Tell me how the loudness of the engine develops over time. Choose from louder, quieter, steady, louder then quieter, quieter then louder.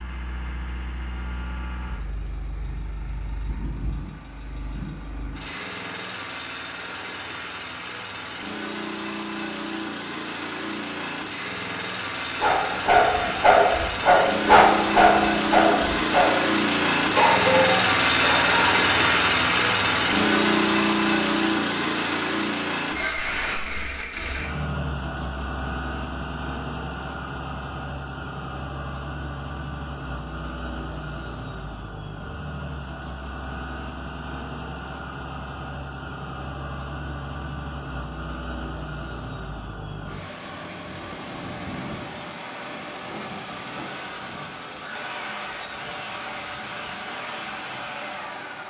louder then quieter.